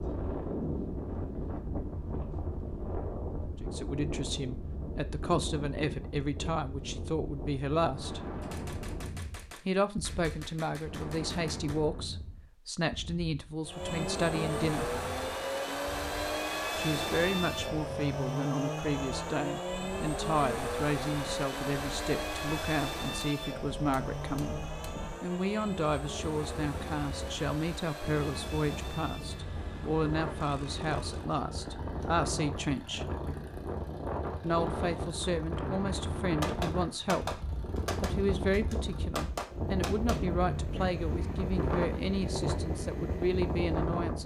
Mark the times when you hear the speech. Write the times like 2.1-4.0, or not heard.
3.6-8.2, 9.7-15.0, 16.8-33.0, 34.4-37.4, 38.0-44.2.